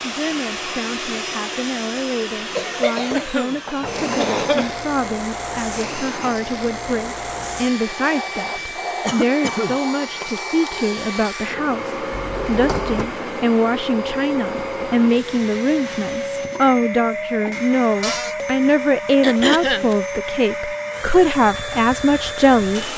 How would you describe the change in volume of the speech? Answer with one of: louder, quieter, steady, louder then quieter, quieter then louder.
louder.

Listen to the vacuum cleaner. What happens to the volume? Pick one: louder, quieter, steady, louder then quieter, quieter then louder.
steady.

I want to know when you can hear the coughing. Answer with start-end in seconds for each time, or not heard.
3.1-4.8, 9.0-9.8, 19.2-19.9.